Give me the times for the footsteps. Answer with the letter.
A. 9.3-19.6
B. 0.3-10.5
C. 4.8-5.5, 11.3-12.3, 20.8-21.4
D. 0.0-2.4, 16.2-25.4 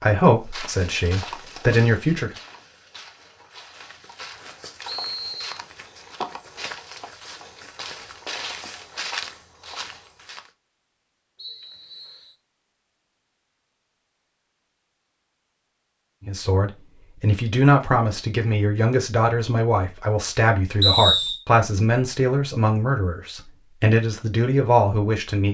B.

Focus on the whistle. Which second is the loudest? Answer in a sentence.
The loudest moment of the whistle is at 21 seconds.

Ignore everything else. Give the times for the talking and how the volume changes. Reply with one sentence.
You can hear the talking briefly from 0.0 to 2.4 s; and from 16.2 to 25.4 s, at a steady volume.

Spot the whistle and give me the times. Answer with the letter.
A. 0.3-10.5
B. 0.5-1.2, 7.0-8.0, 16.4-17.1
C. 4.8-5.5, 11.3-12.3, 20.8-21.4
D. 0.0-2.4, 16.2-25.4
C.